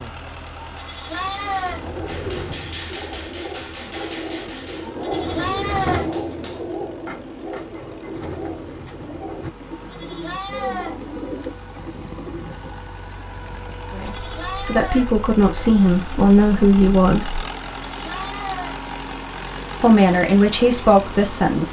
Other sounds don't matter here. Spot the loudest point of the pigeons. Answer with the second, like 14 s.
6 s.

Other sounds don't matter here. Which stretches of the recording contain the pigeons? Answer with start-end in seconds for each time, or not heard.
1.1-12.7.